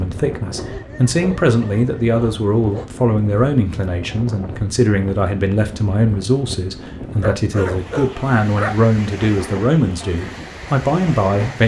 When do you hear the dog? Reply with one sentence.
The dog can be heard from 0.6 to 2.9 s and from 7.2 to 8.8 s.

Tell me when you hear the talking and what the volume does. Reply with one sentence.
The talking can be heard from 0.0 to 11.6 s, at a steady volume.